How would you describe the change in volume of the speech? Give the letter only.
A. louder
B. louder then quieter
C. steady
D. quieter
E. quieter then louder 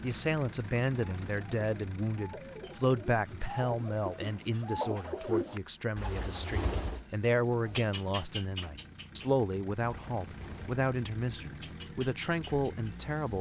C.